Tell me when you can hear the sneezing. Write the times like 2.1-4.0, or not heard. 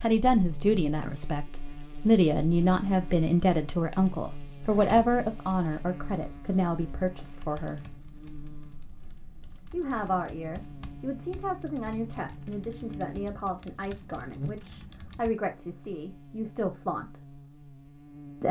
not heard.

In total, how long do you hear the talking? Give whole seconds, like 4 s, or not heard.
15 s.